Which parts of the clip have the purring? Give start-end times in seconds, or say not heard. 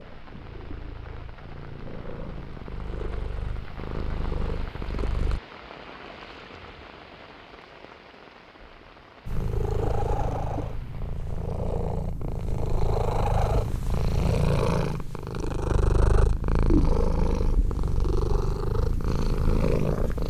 0.0-5.4, 9.2-20.2.